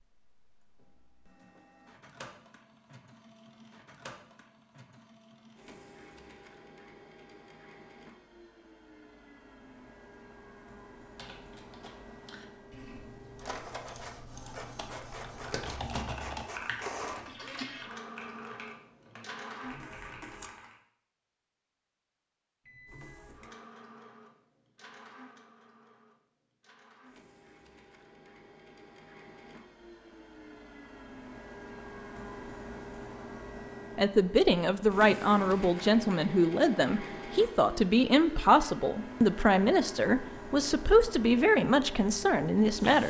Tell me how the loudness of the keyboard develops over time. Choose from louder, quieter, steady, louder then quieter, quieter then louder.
louder then quieter.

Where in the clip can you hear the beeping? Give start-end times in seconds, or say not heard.
22.6-23.3.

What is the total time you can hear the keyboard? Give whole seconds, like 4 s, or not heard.
10 s.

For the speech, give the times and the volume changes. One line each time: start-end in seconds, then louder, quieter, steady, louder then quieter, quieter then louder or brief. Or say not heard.
34.0-43.0 steady.